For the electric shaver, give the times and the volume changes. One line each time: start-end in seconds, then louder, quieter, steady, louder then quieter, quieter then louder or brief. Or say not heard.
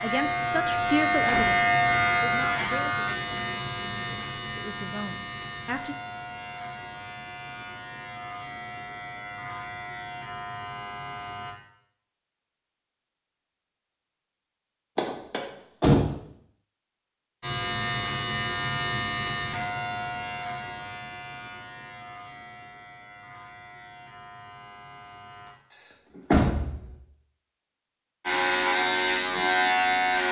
0.0-11.6 quieter
17.4-25.6 quieter
28.2-30.2 brief.